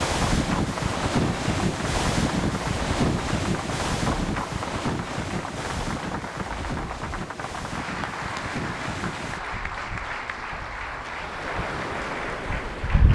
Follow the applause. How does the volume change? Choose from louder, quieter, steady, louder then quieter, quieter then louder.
steady.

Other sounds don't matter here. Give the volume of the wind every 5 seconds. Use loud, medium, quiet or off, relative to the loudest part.
loud, medium, medium.